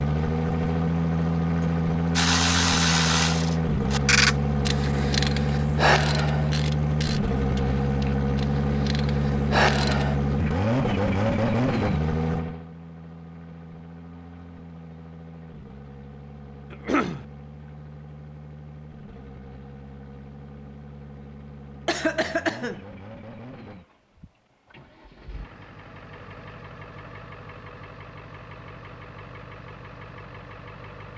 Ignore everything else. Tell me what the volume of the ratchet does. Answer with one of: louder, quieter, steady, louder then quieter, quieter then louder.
quieter then louder.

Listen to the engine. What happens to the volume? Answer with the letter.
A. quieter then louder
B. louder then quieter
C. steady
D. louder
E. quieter
E.